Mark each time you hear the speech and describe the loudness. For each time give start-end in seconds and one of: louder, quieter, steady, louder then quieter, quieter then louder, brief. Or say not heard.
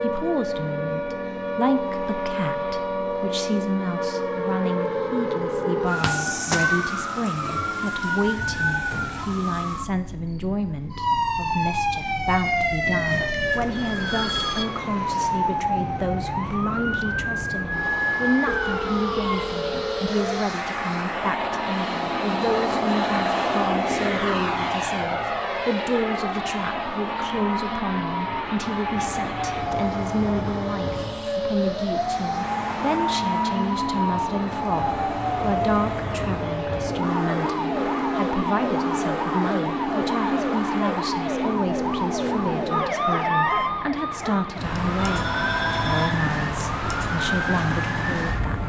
0.0-48.6 steady.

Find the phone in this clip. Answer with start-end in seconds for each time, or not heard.
13.4-14.7, 18.4-20.4, 45.0-46.1.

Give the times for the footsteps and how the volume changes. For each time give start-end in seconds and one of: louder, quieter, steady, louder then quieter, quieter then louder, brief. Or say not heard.
not heard.